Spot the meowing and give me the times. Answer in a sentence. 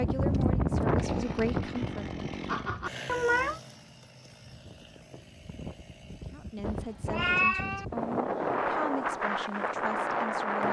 The meowing can be heard from 2.5 to 3.6 s and from 6.7 to 7.8 s.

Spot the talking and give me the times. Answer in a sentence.
The talking can be heard from 0.0 to 2.2 s and from 6.3 to 10.6 s.